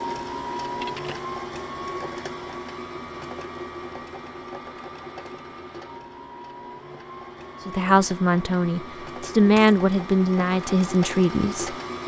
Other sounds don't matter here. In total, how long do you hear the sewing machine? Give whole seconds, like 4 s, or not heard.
12 s.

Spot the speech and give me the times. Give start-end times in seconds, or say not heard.
7.7-11.8.